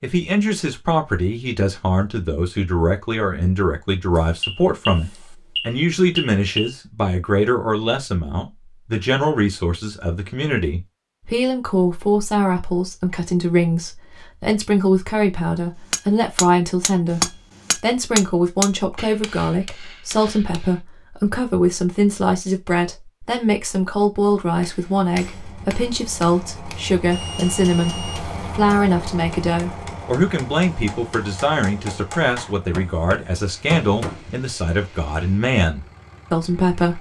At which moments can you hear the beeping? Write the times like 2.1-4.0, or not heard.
4.4-6.8, 27.1-28.6.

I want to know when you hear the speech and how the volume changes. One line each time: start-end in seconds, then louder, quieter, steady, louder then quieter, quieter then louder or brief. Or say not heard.
0.0-36.9 steady.